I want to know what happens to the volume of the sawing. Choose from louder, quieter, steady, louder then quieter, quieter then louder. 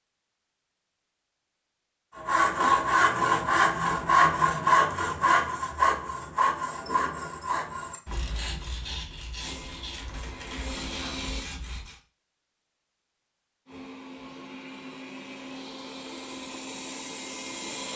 quieter.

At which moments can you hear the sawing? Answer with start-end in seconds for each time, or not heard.
2.1-12.0.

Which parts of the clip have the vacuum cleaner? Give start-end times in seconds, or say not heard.
9.4-11.5, 13.7-17.9.